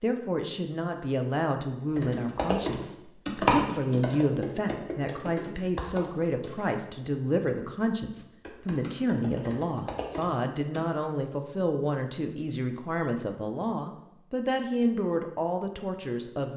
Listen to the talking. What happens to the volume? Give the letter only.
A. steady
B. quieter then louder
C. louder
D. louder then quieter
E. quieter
A.